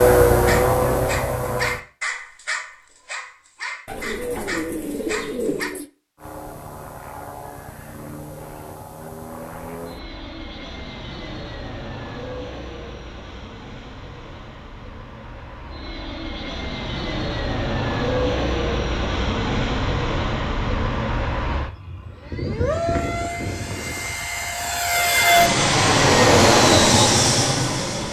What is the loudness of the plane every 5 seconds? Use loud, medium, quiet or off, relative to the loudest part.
loud, quiet, quiet, medium, medium, loud.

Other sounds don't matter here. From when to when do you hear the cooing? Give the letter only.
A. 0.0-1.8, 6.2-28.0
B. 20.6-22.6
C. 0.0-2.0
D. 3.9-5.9
D.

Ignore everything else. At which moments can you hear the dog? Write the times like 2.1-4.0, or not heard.
0.5-5.7.